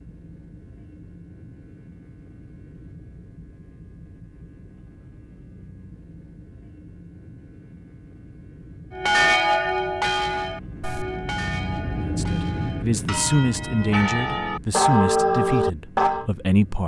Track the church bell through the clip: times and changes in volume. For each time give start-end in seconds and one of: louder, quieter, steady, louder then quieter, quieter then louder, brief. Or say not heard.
8.9-16.2 quieter then louder.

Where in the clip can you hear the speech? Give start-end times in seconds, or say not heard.
12.0-16.8.